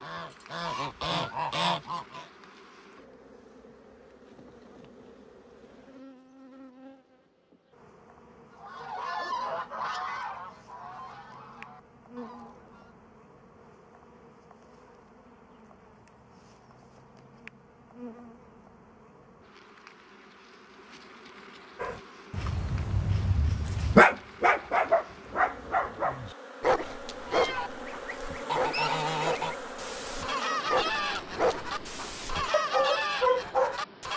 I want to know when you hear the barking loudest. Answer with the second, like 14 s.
24 s.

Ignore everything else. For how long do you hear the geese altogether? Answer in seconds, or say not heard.
14 s.